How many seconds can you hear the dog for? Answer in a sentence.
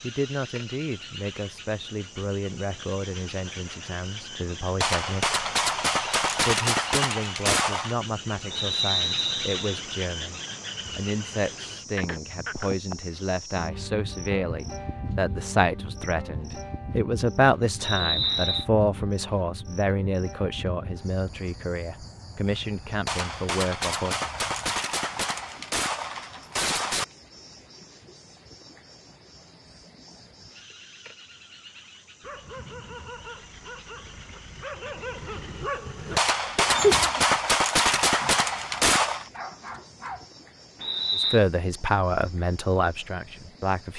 You can hear the dog for 8 seconds altogether.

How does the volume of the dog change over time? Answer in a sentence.
The loudness of the dog goes up, then down.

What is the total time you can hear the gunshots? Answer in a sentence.
You can hear the gunshots for 10 seconds altogether.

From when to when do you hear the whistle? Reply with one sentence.
The whistle can be heard from 8.5 to 9.8 s, from 17.8 to 18.6 s and from 40.8 to 41.4 s.